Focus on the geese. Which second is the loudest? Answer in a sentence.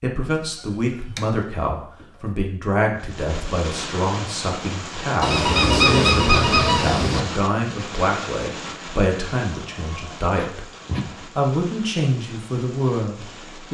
The loudest moment of the geese is at 6 seconds.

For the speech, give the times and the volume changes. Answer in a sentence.
You can hear the speech from 0.0 to 10.7 s, at a steady volume; and briefly from 11.3 to 13.6 s.